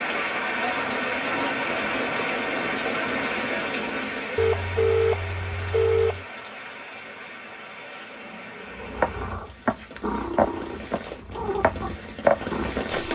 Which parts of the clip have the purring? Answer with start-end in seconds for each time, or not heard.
8.8-13.1.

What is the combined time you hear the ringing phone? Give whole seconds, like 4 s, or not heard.
2 s.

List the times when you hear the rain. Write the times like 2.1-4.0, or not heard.
0.0-13.1.